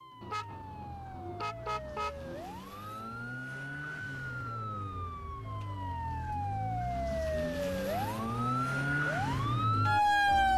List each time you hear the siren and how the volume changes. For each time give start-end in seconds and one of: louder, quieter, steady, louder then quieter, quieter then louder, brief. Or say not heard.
0.0-10.5 louder.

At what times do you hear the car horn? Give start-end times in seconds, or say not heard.
0.2-2.6.